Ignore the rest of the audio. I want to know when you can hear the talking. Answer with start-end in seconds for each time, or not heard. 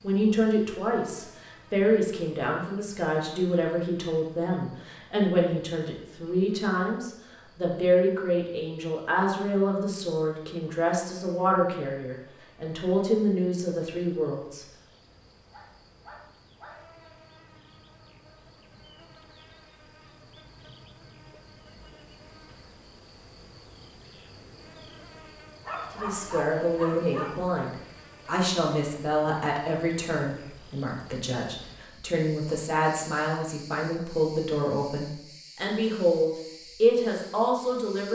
0.0-14.7, 25.9-38.1.